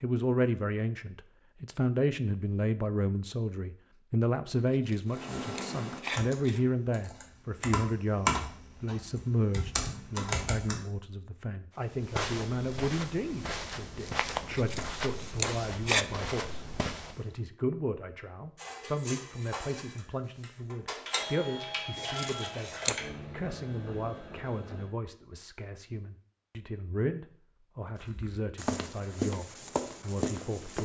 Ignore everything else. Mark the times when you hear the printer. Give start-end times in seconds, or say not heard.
18.6-24.9.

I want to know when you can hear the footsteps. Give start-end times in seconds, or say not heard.
11.9-17.2, 28.0-30.8.